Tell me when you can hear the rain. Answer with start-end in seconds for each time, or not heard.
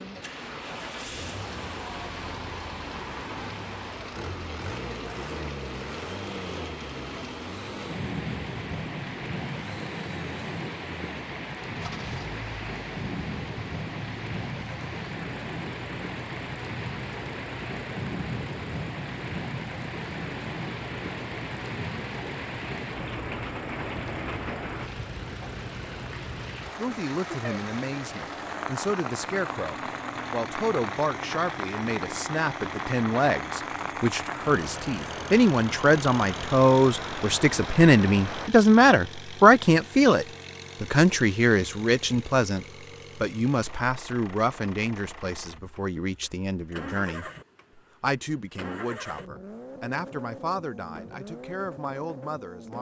0.0-38.5.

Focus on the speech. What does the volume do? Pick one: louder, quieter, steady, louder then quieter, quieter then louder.
louder then quieter.